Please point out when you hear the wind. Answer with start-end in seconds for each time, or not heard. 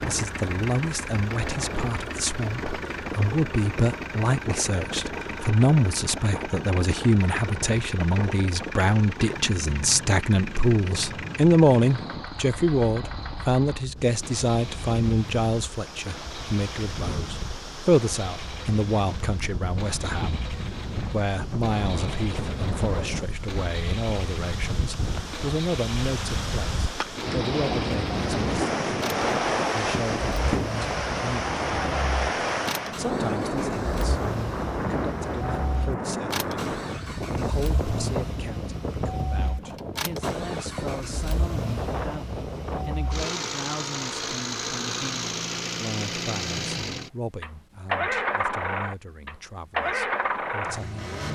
0.0-43.1.